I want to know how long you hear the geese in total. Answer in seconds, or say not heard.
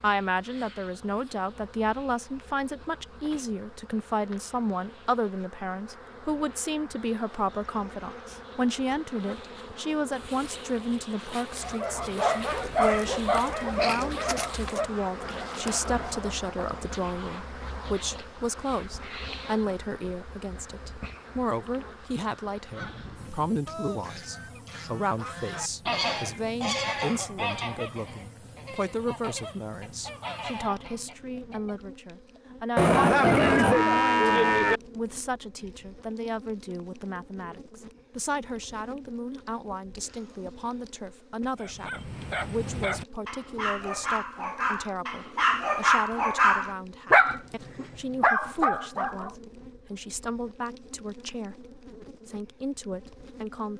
9 s.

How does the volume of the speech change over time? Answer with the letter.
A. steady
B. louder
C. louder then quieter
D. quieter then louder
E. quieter
E.